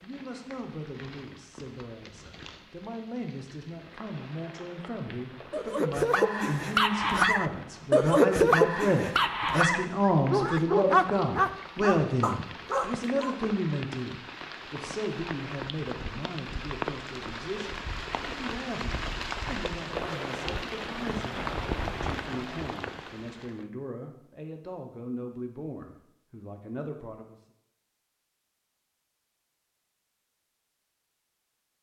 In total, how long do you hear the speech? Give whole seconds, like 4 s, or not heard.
27 s.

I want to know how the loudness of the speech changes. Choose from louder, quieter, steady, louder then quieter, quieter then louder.
louder then quieter.